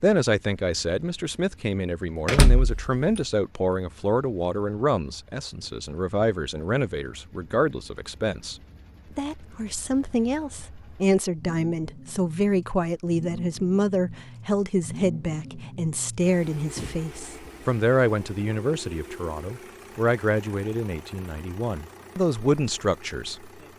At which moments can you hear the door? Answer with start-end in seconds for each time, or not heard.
2.2-3.2.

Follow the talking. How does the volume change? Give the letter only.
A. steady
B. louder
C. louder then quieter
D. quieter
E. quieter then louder
A.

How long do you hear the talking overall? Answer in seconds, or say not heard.
23 s.